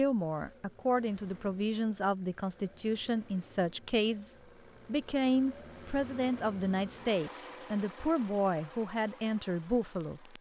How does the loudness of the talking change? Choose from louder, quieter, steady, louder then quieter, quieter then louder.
steady.